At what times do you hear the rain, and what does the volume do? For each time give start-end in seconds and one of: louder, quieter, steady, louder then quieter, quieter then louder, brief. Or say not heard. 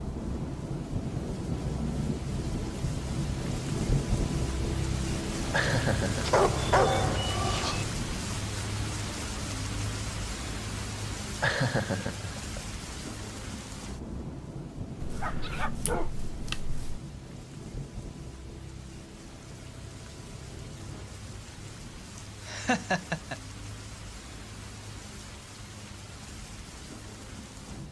0.0-27.8 quieter.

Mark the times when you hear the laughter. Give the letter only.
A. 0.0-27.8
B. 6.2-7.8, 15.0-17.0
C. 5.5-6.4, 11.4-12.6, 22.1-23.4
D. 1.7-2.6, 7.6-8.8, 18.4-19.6
C.